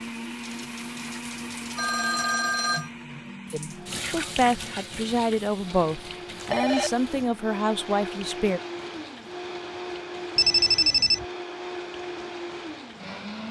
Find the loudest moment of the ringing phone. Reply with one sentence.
The loudest moment of the ringing phone is at 11 seconds.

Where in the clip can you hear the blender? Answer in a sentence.
You can hear the blender from 0.0 to 13.4 s.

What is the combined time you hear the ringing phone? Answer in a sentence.
The ringing phone can be heard for 4 seconds in total.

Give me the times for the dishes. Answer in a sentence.
You can't hear the dishes here.